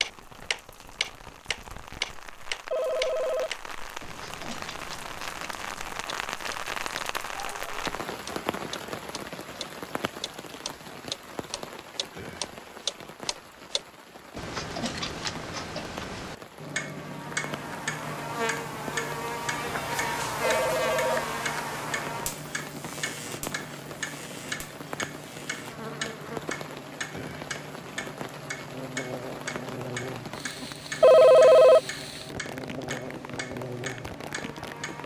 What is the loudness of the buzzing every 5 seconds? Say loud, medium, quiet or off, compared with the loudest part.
off, off, off, loud, loud, medium, medium.